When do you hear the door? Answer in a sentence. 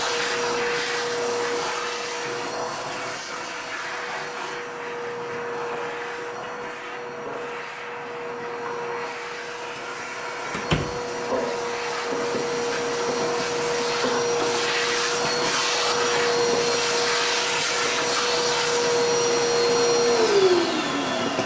The door can be heard from 10.5 to 10.9 s.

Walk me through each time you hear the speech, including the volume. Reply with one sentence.
The speech can't be heard in this clip.